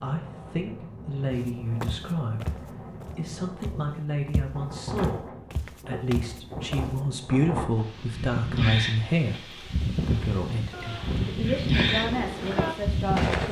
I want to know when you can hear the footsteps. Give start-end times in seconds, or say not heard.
1.3-7.0.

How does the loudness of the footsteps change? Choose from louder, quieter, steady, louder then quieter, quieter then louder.
quieter then louder.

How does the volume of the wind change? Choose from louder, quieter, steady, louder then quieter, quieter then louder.
louder.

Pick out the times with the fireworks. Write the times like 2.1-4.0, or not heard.
9.9-13.4.